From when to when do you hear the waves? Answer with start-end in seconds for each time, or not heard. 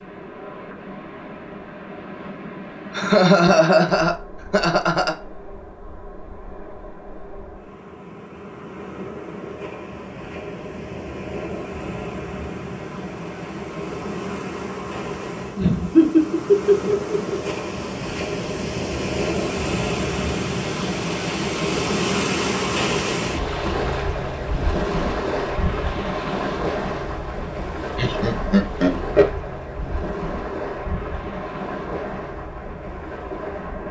0.0-33.8.